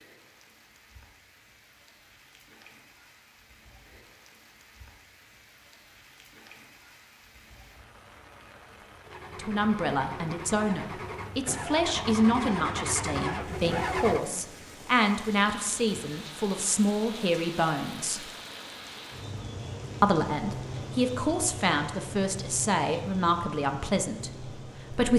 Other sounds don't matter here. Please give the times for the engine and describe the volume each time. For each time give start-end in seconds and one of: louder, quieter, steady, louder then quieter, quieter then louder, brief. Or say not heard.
9.0-14.2 louder.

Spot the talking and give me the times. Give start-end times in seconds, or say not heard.
9.3-18.2, 20.0-25.1.